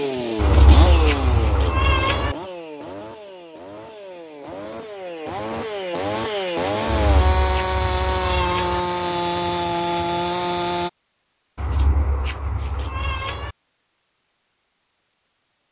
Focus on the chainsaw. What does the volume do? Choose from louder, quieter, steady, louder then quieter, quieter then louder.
quieter then louder.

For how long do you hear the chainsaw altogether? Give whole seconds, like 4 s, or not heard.
11 s.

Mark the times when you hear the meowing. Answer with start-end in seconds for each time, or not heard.
0.3-2.4, 6.8-8.8, 11.6-13.6.